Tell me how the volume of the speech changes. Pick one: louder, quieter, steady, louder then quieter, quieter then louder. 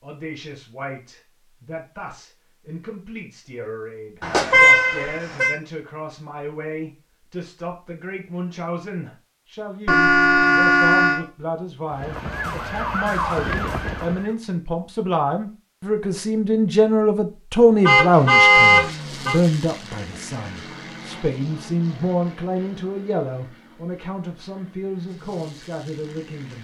louder then quieter.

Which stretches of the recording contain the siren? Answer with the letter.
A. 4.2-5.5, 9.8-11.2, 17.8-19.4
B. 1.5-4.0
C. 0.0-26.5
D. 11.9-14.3
D.